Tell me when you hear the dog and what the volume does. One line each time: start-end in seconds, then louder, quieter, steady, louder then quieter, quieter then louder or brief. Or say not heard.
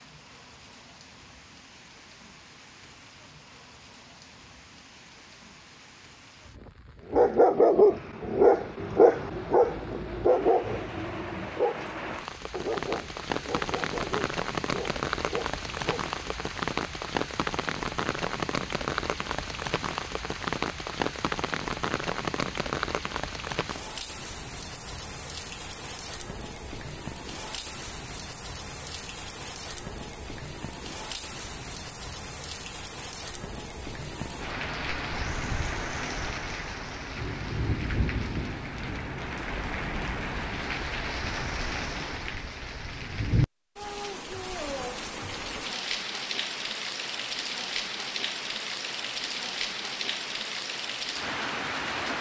7.1-16.1 quieter.